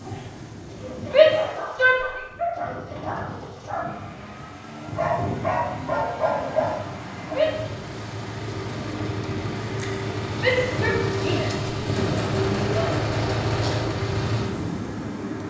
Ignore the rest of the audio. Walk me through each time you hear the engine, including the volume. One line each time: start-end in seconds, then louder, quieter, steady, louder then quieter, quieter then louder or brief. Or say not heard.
0.0-15.4 louder.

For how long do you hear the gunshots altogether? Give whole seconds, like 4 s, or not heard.
2 s.